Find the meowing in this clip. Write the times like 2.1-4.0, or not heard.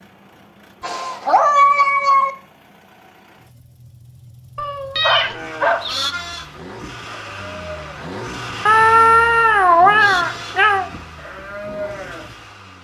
0.8-2.3, 4.5-6.0, 8.7-10.9.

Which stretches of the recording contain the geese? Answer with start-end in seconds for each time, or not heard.
not heard.